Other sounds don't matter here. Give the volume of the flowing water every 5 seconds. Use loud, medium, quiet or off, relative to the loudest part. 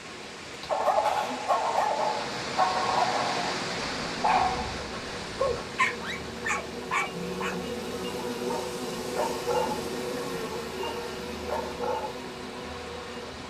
loud, medium, medium.